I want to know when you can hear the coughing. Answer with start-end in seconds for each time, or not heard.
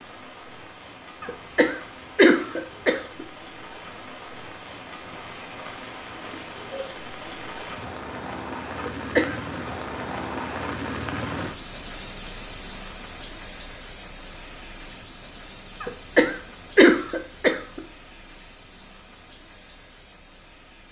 1.2-3.2, 8.8-9.3, 15.8-17.8.